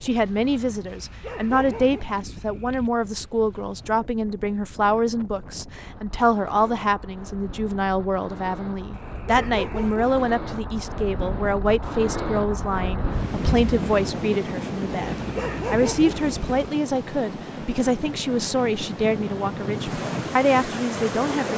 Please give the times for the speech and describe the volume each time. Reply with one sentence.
You can hear the speech from 0.0 to 21.5 s, at a steady volume.